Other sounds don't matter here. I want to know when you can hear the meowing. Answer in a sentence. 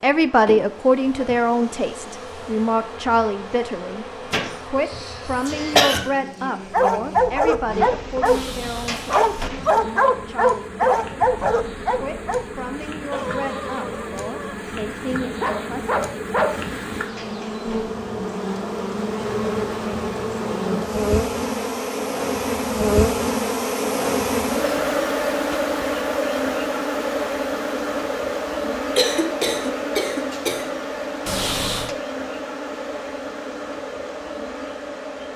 You can't hear the meowing here.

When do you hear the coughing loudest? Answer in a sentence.
The loudest moment of the coughing is at 6 seconds.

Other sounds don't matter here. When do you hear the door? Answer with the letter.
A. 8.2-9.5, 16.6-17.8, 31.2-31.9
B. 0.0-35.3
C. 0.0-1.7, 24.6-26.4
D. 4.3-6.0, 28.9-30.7
A.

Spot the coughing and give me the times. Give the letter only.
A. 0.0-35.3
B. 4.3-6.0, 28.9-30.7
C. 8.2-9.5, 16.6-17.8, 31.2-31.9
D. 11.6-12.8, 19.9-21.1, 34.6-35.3
B.